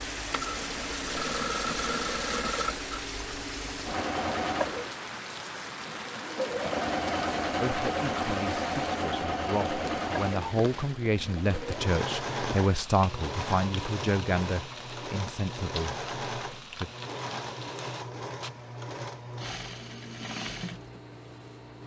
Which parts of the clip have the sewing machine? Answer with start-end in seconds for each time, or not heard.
0.0-21.8.